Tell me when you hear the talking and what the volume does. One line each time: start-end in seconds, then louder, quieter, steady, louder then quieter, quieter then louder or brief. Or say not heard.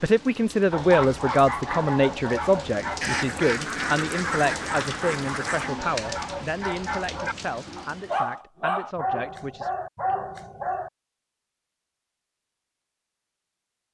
0.0-9.7 quieter.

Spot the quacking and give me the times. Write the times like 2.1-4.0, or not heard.
3.0-5.7.